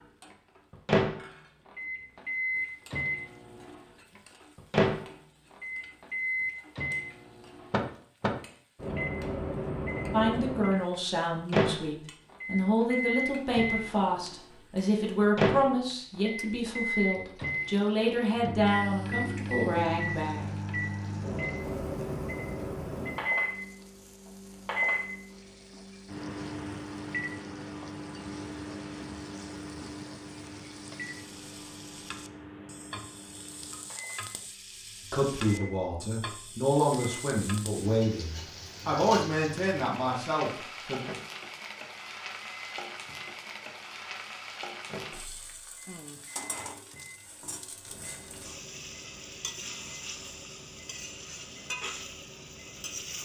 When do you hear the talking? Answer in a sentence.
The talking can be heard from 10.1 to 20.6 s and from 35.1 to 41.0 s.